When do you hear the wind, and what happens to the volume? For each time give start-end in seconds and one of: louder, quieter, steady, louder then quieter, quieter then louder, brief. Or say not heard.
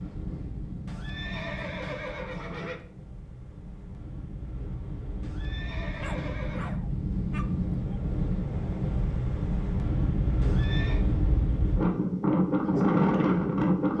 0.0-13.9 louder.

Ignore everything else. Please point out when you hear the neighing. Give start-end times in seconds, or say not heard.
0.8-2.9, 5.2-6.8, 10.4-11.1.